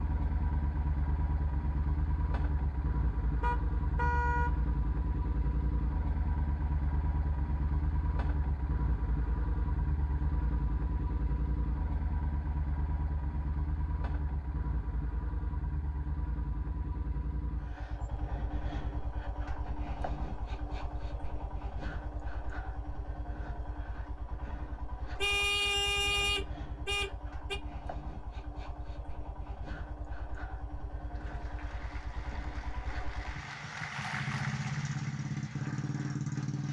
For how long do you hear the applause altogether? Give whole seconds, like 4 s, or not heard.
6 s.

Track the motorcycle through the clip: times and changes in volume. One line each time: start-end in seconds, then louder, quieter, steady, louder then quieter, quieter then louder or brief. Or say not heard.
0.0-36.6 quieter then louder.